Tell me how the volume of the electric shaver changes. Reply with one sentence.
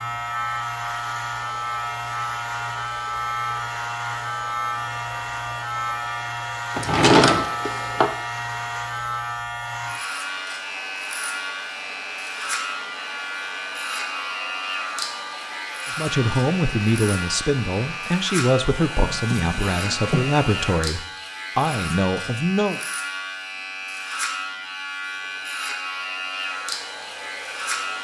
The loudness of the electric shaver stays about the same.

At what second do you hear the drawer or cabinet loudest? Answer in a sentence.
The loudest moment of the drawer or cabinet is at 7 seconds.